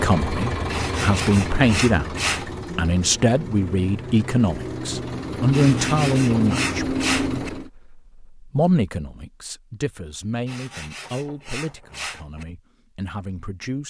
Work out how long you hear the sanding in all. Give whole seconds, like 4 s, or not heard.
6 s.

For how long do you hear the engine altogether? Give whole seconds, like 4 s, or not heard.
8 s.